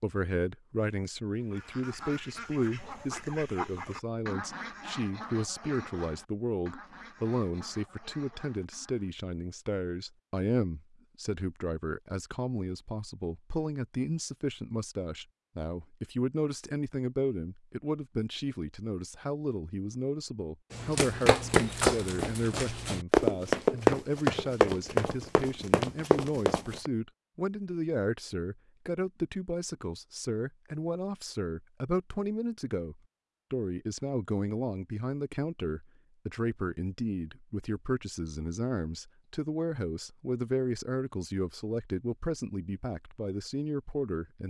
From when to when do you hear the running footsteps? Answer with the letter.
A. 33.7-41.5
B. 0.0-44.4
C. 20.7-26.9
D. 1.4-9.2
C.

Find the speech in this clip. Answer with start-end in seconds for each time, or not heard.
0.0-44.4.